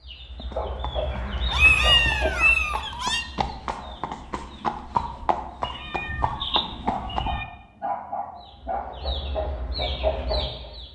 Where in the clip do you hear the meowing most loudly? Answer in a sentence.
The volume of the meowing peaks at 2 seconds.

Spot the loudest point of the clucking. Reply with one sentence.
The loudest moment of the clucking is at 10 seconds.